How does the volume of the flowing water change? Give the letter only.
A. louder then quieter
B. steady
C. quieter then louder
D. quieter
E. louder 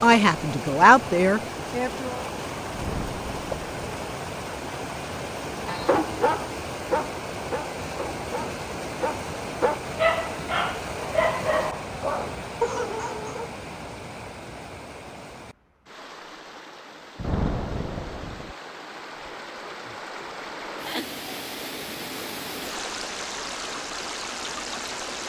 C.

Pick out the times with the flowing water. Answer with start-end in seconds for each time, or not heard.
0.0-25.2.